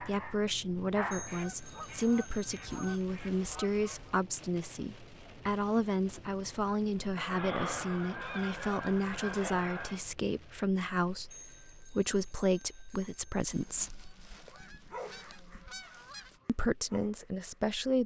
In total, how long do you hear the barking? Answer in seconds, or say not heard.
5 s.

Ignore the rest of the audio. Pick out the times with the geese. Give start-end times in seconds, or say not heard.
1.2-4.2, 7.2-10.1, 13.5-16.4.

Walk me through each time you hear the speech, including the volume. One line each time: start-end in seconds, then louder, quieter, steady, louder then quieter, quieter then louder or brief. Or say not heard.
0.0-14.0 steady
16.4-18.0 brief.